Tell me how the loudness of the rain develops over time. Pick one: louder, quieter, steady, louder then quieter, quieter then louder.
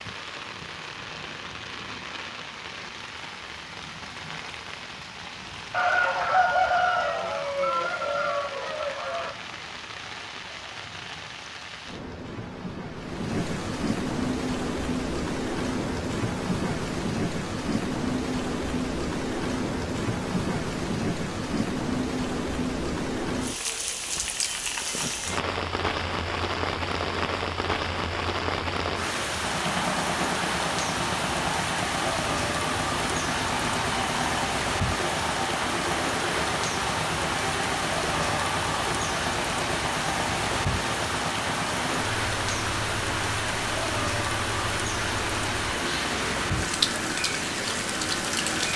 louder.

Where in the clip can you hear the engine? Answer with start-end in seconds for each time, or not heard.
29.3-48.7.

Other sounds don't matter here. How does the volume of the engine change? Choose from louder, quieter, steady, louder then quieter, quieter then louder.
steady.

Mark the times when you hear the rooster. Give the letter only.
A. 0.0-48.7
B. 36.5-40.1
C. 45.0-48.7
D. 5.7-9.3
D.